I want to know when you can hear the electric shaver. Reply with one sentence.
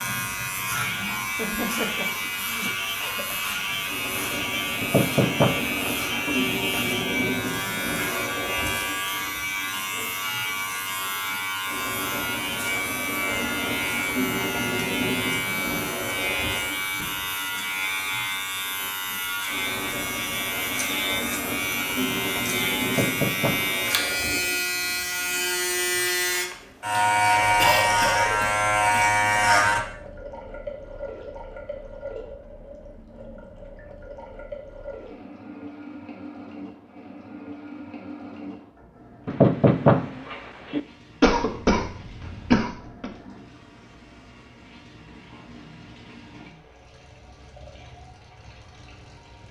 You can hear the electric shaver from 0.0 to 29.8 s.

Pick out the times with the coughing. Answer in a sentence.
The coughing can be heard from 1.4 to 3.4 s, from 27.6 to 29.1 s and from 41.2 to 43.1 s.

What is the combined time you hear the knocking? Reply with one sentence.
The knocking can be heard for 5 seconds in total.